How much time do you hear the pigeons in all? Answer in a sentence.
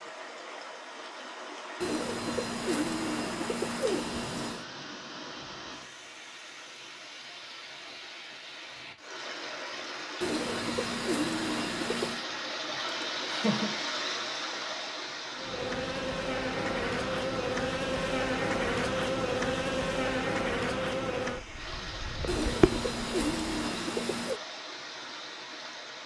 The pigeons can be heard for 7 seconds in total.